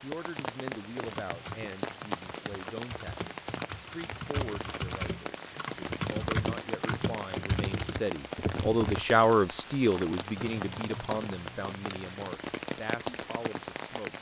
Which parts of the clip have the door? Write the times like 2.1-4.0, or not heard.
not heard.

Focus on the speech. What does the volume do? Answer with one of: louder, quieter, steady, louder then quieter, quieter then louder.
louder then quieter.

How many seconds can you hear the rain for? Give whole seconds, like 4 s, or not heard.
14 s.